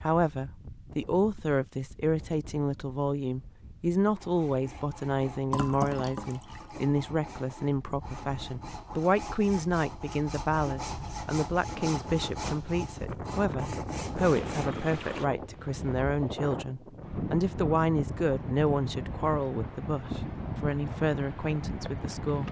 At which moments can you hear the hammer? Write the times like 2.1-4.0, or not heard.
not heard.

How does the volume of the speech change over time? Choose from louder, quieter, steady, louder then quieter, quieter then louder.
steady.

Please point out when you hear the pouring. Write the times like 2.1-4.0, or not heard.
5.5-6.7, 14.2-15.3.